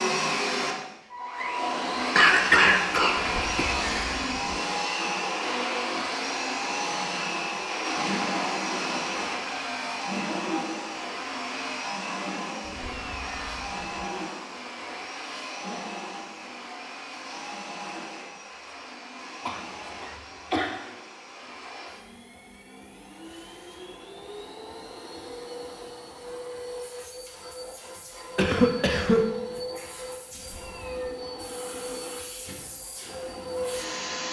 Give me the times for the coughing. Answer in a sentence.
You can hear the coughing from 2.1 to 4.2 s, from 19.4 to 20.7 s and from 28.4 to 29.2 s.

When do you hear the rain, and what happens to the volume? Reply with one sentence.
The rain can't be heard in this clip.